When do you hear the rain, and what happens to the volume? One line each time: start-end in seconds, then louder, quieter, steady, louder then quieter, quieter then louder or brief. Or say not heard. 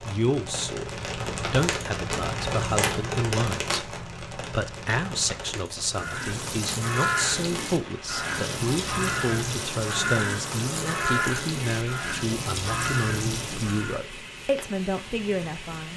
0.0-15.9 quieter.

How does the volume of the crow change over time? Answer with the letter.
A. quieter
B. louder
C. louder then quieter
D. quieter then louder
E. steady
E.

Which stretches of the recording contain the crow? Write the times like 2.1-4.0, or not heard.
5.9-14.0.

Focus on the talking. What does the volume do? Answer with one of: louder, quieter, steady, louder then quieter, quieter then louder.
steady.